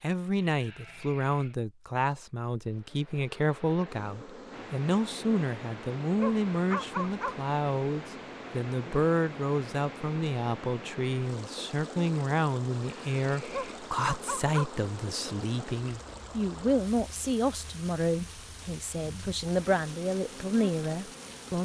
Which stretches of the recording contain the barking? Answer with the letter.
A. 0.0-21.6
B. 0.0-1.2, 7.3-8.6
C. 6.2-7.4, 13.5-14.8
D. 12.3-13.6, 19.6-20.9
C.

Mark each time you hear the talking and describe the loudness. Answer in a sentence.
You can hear the talking from 0.0 to 21.6 s, at a steady volume.